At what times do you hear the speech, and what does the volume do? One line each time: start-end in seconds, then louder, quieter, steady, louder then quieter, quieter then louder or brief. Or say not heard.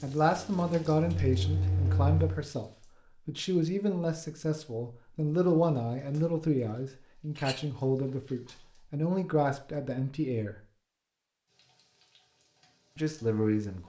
0.0-10.6 steady
12.9-13.8 brief.